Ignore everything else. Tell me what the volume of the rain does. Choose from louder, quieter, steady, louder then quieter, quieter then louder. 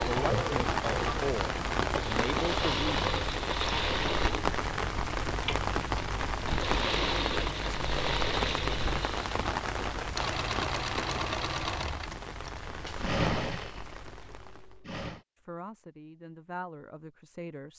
quieter.